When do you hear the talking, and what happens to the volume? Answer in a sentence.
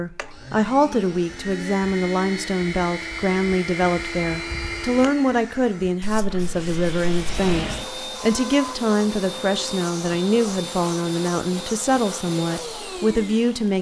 You can hear the talking from 0.0 to 13.7 s, at a steady volume.